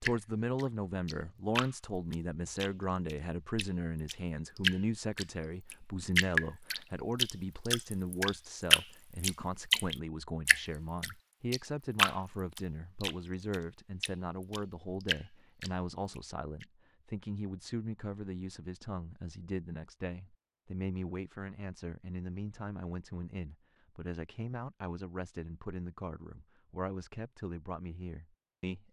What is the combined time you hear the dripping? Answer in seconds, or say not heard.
17 s.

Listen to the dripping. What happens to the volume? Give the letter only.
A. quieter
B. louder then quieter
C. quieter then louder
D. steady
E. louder
B.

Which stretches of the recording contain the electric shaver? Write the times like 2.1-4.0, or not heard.
not heard.